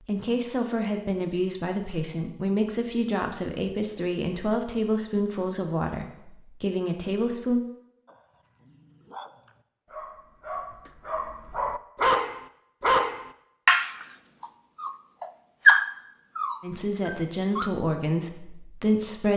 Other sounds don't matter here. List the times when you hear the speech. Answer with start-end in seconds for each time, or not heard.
0.0-7.6, 16.6-19.3.